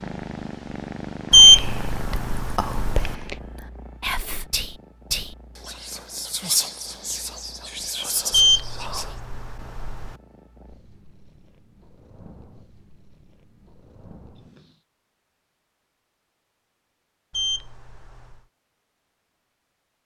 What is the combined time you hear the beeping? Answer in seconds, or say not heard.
5 s.